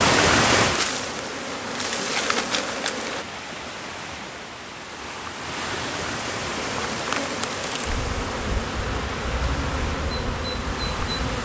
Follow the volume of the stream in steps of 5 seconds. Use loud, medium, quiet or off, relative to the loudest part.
loud, medium, medium.